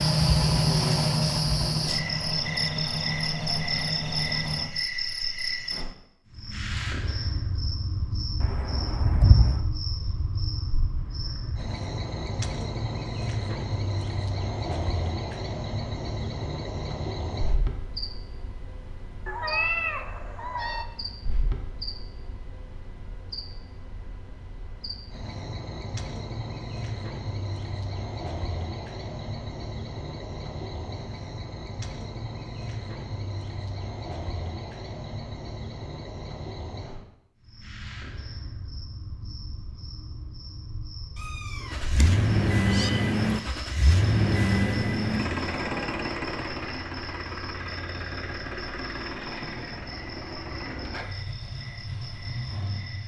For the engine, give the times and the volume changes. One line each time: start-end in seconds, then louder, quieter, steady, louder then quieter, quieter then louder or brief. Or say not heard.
0.0-4.8 quieter
41.7-53.0 quieter.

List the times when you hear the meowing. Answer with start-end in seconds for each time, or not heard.
8.4-9.6, 19.2-20.9, 41.2-42.9.